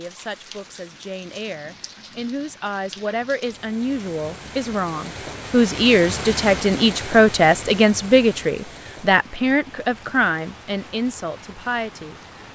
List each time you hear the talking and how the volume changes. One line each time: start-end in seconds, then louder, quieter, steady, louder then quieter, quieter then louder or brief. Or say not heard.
0.0-12.2 louder then quieter.